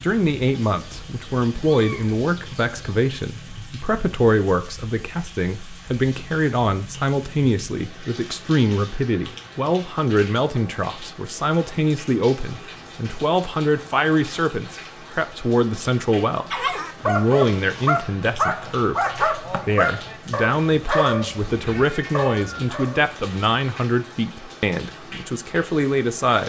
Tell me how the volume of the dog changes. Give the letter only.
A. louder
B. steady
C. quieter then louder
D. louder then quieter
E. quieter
E.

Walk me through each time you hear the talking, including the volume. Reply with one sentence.
The talking can be heard from 0.0 to 26.4 s, at a steady volume.